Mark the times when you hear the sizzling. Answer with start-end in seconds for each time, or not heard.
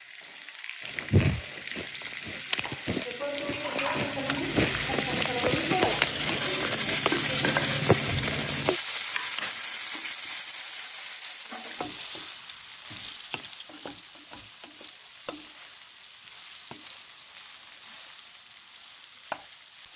0.0-19.9.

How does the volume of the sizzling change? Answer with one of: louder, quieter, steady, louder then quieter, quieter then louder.
louder then quieter.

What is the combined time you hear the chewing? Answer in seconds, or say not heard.
8 s.